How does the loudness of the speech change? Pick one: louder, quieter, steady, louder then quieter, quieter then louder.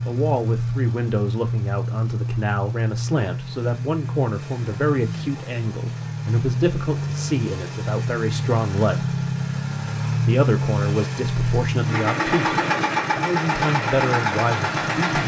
steady.